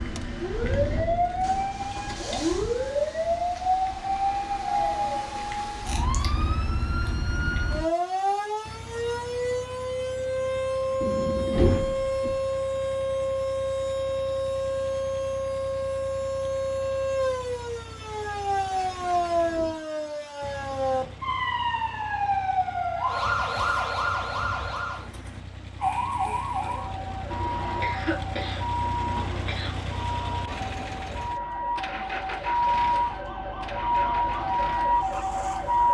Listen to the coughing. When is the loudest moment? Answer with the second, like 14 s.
28 s.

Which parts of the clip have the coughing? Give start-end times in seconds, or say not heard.
27.3-29.8.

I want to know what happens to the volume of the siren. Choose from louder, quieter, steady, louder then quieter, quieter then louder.
steady.